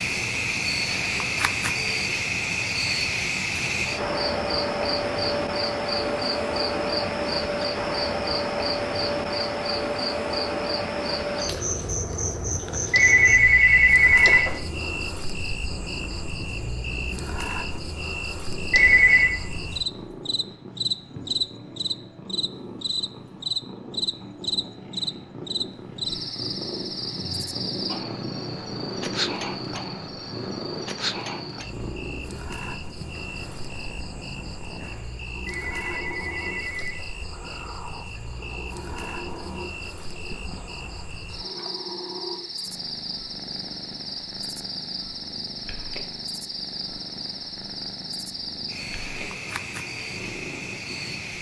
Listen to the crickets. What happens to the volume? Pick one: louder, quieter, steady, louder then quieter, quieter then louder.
quieter.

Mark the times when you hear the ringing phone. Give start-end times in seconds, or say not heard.
12.9-14.6, 18.7-19.4, 35.5-37.1.